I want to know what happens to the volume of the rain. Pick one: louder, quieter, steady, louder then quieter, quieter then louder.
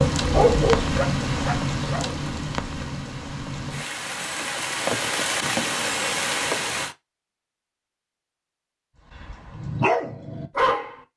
quieter then louder.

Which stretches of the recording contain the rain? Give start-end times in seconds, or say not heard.
0.0-7.0.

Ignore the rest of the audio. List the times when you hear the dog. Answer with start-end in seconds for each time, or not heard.
0.0-2.1, 9.2-10.9.